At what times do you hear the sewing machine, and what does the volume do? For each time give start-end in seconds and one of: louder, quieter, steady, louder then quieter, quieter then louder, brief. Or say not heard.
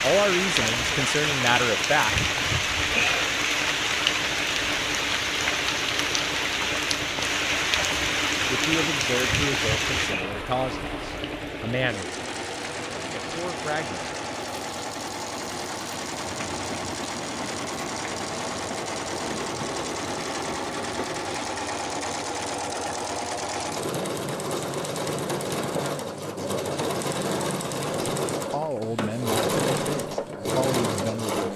0.0-31.5 louder.